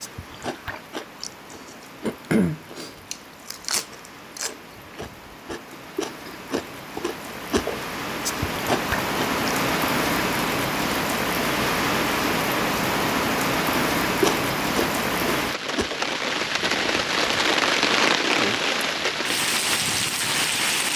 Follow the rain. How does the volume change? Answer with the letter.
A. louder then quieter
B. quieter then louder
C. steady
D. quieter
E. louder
E.